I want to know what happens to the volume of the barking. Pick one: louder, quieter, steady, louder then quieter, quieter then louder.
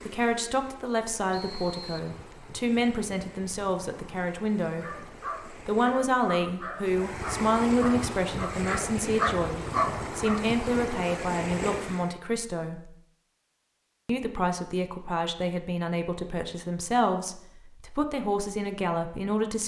louder.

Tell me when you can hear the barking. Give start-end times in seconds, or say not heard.
4.8-10.4.